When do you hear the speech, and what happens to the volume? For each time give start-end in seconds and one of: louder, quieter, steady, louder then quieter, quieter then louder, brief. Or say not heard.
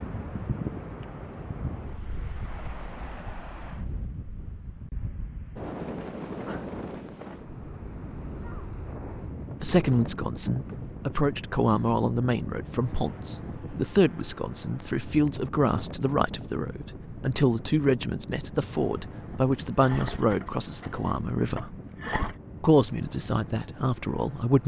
9.6-21.8 steady
22.6-24.6 brief.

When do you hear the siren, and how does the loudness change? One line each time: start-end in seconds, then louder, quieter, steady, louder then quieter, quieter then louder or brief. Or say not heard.
not heard.